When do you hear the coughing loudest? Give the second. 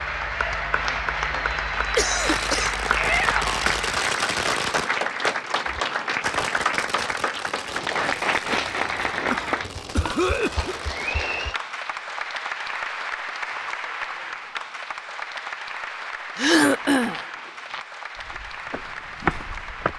17 s.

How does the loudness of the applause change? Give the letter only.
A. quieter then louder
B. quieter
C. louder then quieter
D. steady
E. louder
B.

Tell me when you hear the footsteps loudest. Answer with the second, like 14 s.
19 s.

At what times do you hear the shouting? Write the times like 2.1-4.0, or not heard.
2.9-3.6.